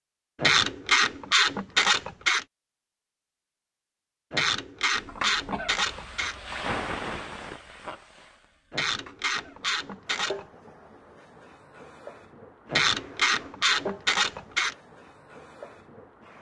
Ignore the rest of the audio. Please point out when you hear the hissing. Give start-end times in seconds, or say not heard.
5.0-16.3.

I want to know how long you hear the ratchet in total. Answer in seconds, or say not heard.
8 s.